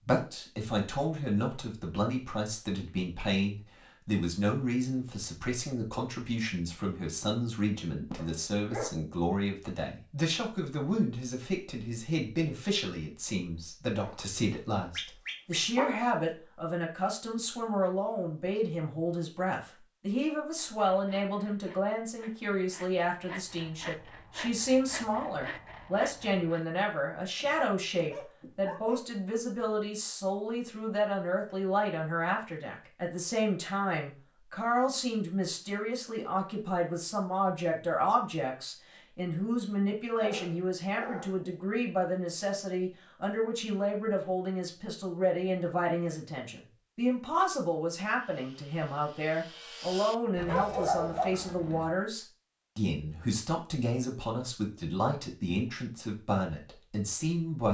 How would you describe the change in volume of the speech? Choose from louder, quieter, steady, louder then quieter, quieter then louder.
steady.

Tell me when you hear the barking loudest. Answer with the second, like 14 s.
51 s.